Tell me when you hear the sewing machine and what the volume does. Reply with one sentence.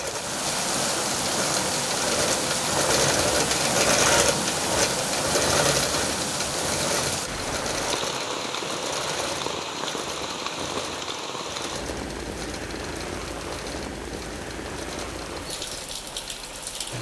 You can hear the sewing machine from 0.0 to 16.9 s, getting quieter.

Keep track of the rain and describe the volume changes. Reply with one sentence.
The loudness of the rain goes down.